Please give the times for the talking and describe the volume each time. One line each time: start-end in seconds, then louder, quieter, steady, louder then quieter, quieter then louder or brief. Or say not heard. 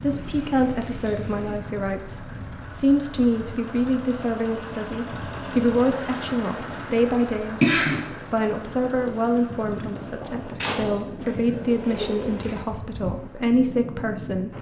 0.0-14.5 steady.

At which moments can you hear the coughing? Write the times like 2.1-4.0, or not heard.
7.6-8.1.